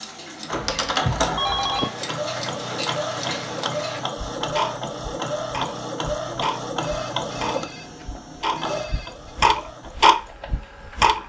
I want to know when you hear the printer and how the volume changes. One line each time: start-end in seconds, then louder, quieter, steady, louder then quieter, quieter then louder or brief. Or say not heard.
0.0-11.2 quieter.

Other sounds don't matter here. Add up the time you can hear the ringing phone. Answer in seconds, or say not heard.
4 s.